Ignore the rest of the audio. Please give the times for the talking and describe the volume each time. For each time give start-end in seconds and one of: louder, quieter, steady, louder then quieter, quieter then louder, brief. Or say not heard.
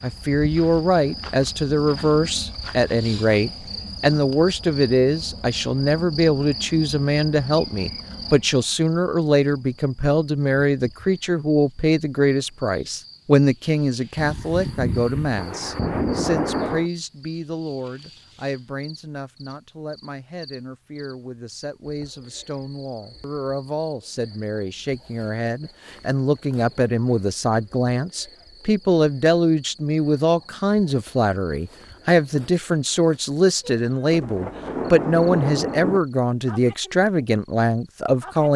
0.0-38.5 quieter then louder.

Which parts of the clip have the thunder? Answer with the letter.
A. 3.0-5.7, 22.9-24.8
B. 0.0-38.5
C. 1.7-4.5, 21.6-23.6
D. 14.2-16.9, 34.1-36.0
D.